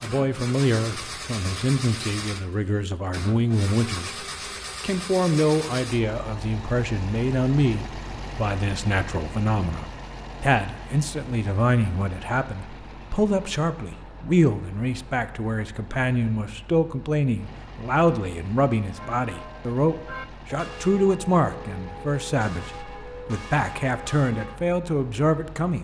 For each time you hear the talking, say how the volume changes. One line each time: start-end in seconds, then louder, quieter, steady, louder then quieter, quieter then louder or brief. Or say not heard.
0.0-25.8 steady.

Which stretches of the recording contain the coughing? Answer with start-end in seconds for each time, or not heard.
not heard.